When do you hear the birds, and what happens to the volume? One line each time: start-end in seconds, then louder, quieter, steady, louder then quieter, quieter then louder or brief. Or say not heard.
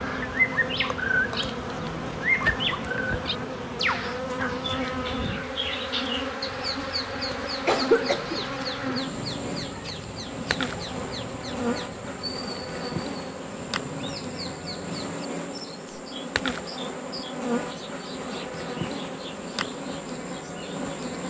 0.0-21.2 quieter.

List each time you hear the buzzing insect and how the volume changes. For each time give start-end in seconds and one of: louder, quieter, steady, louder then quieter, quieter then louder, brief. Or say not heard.
0.0-21.2 steady.